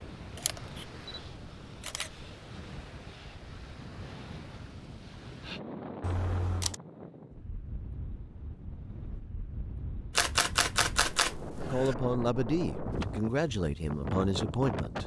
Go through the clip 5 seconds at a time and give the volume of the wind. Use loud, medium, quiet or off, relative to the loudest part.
medium, medium, loud.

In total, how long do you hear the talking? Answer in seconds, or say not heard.
3 s.